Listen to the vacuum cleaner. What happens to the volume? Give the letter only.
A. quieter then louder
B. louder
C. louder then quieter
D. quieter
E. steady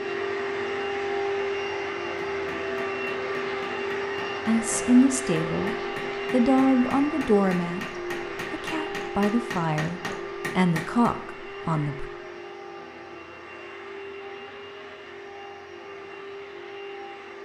D.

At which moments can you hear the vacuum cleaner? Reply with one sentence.
The vacuum cleaner can be heard from 0.0 to 17.4 s.